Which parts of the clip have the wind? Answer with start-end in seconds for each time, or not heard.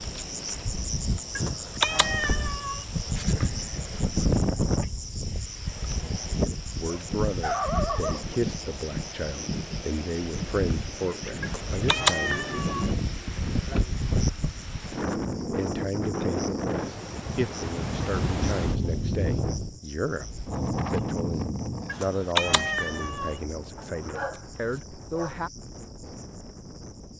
0.0-27.1.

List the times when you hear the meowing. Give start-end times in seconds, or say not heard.
1.4-2.9, 11.4-12.9, 21.9-23.4.